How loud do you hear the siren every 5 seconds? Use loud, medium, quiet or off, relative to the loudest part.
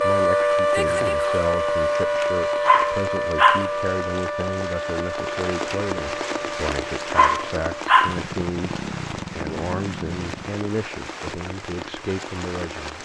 loud, medium, off.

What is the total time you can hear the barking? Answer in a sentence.
You can hear the barking for 3 seconds altogether.